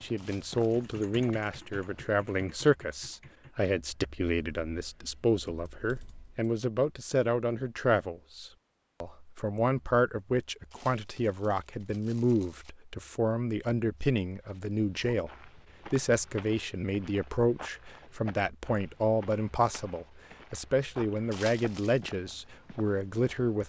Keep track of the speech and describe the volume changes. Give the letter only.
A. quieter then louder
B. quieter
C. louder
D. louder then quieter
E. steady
E.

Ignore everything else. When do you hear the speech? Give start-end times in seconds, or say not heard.
0.0-23.6.